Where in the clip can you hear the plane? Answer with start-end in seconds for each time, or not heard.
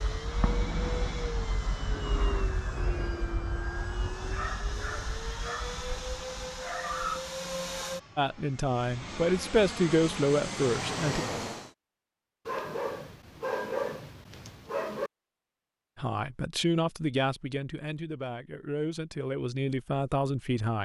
0.0-11.7.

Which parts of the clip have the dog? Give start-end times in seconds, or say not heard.
4.2-7.2, 12.4-15.1.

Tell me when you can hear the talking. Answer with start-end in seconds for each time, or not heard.
8.2-11.2, 15.9-20.8.